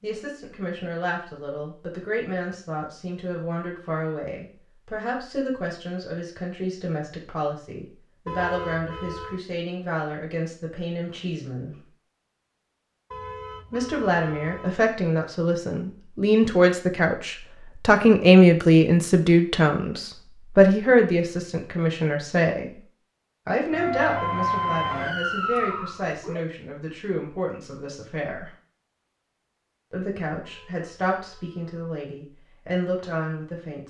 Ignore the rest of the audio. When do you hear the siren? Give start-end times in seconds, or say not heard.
23.7-26.4.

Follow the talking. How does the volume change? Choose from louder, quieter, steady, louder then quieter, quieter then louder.
louder then quieter.